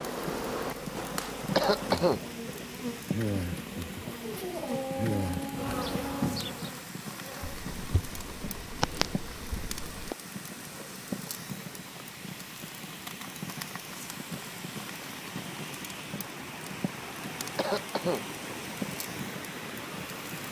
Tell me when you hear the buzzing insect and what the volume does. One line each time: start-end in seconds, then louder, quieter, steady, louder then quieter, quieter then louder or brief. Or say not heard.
0.0-10.2 steady.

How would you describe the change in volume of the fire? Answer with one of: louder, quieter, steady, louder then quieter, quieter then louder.
steady.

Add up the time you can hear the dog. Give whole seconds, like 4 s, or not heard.
2 s.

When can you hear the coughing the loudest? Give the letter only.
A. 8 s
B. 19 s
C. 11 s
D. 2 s
D.